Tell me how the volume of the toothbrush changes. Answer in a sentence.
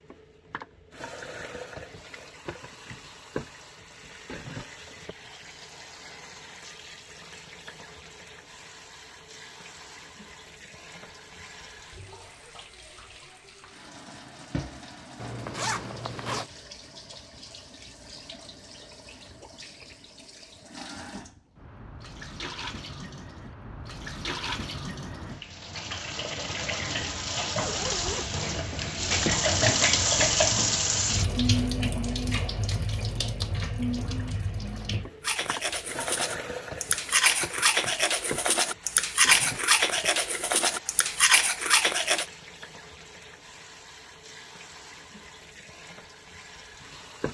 The volume of the toothbrush goes up.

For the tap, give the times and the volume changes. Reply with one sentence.
The tap can be heard from 0.0 to 47.2 s, getting louder then quieter.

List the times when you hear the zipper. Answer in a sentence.
The zipper can be heard from 15.2 to 16.5 s and from 27.6 to 29.4 s.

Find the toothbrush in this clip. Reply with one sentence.
The toothbrush can be heard from 35.2 to 42.2 s.